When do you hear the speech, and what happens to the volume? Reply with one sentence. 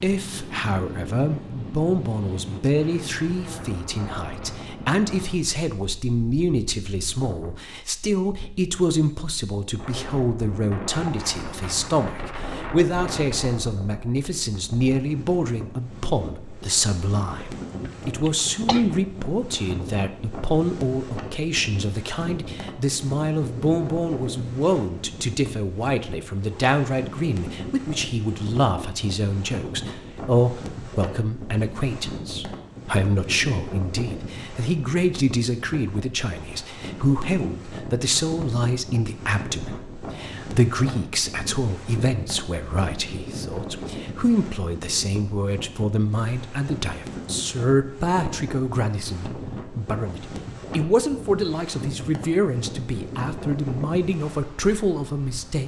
You can hear the speech from 0.0 to 55.6 s, at a steady volume.